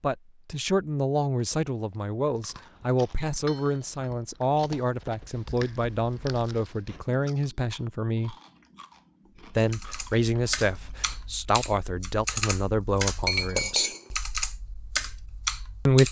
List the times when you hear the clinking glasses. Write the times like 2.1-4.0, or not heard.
3.0-4.5, 13.2-14.1.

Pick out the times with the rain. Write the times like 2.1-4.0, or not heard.
not heard.